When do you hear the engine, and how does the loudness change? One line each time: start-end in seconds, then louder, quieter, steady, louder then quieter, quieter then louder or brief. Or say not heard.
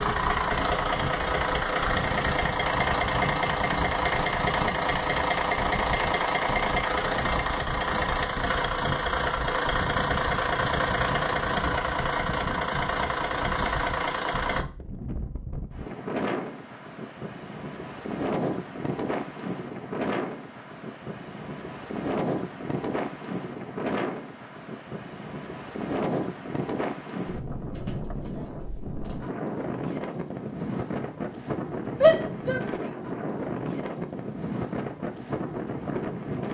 0.0-14.7 steady.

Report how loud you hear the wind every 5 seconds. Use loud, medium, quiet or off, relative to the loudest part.
medium, medium, medium, loud, loud, loud, loud, loud.